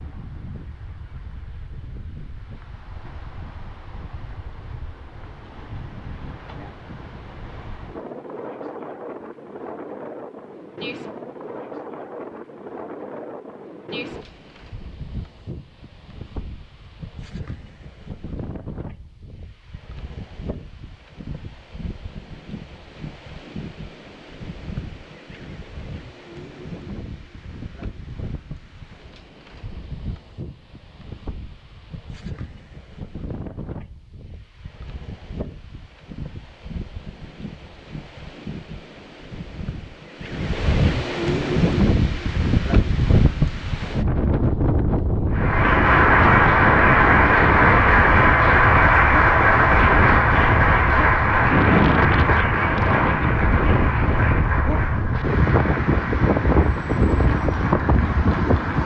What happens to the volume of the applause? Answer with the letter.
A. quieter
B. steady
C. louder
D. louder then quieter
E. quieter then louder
A.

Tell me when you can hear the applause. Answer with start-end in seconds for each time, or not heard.
45.3-58.8.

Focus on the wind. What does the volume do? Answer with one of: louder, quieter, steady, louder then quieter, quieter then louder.
louder.